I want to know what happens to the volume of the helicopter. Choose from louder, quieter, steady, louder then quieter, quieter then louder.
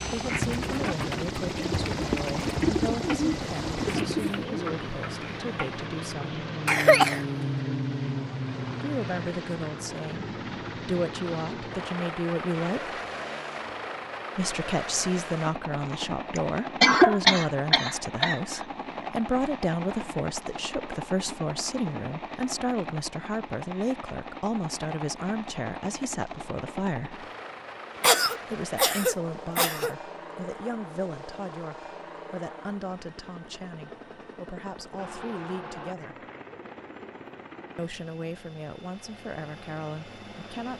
quieter.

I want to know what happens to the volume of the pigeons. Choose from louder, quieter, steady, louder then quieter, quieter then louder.
louder then quieter.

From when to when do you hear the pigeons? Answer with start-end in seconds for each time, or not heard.
0.1-5.7.